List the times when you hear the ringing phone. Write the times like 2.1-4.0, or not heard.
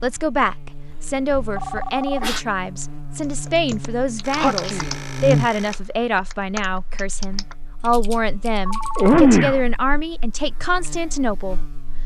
1.6-2.3, 4.2-5.8, 8.7-9.2.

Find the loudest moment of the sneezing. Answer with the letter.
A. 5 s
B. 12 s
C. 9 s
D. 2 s
C.